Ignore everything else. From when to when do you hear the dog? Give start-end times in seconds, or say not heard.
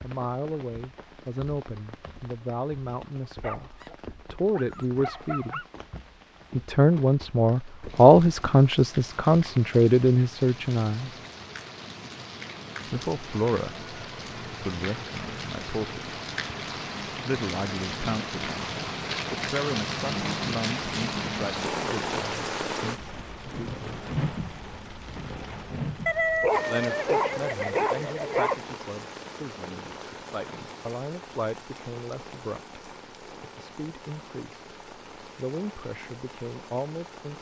3.4-5.7, 26.1-28.6.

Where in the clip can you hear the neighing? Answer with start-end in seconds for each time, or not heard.
not heard.